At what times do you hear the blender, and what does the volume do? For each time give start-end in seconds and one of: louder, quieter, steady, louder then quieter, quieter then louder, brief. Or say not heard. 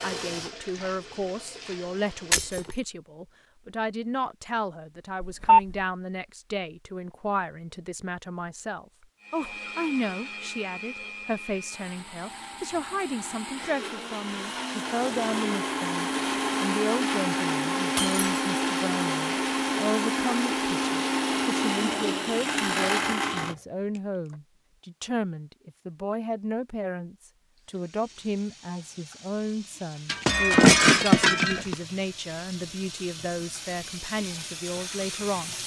9.2-24.4 louder.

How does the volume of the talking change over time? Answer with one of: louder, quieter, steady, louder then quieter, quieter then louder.
steady.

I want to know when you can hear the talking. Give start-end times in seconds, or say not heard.
0.0-35.5.